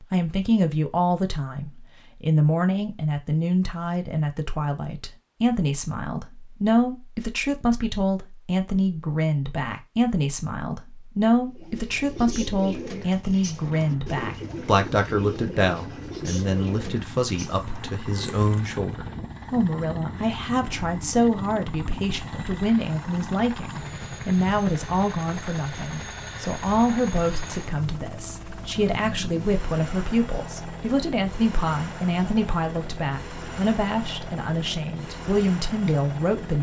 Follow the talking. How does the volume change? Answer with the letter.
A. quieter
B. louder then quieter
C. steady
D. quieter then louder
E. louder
C.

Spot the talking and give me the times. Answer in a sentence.
The talking can be heard from 0.0 to 36.5 s.